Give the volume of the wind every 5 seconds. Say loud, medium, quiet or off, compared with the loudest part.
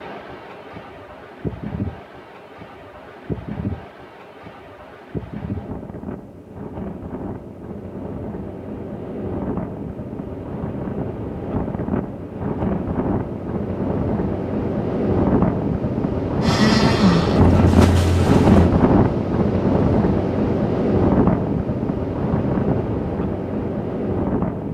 quiet, quiet, medium, loud, loud.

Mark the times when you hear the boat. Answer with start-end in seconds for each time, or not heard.
16.4-18.7.